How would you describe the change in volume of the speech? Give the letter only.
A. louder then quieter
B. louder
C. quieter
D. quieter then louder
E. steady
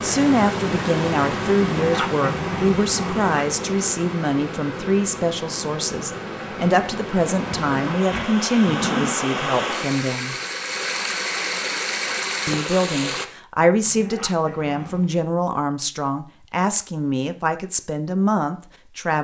E.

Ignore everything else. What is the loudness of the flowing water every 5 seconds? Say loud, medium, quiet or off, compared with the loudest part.
loud, loud, loud, off.